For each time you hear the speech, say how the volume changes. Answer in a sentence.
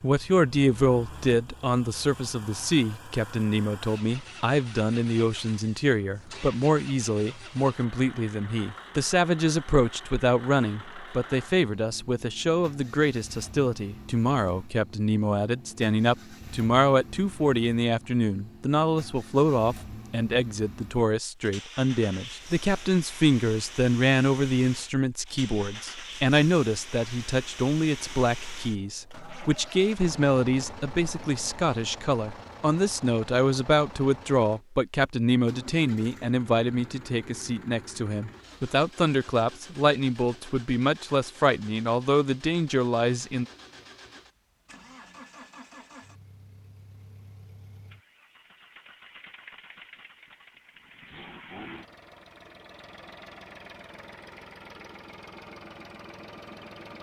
You can hear the speech from 0.0 to 43.5 s, at a steady volume.